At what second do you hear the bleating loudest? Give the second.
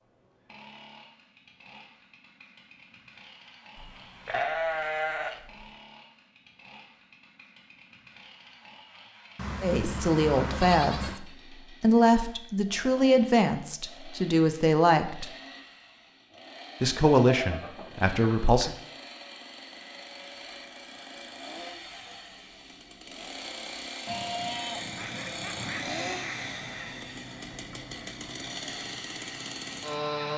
5 s.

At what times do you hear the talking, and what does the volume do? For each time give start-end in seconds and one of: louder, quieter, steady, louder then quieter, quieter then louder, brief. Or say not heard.
9.6-15.3 steady
16.8-18.7 brief.